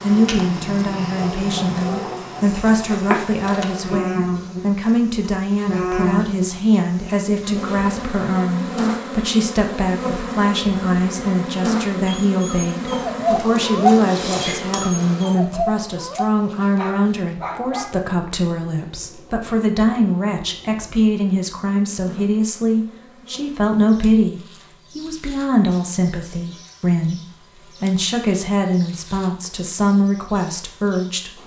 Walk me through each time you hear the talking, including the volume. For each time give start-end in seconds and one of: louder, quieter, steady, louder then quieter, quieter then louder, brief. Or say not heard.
0.0-31.4 steady.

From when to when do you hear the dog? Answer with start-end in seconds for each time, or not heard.
12.1-18.0.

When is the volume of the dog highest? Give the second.
14 s.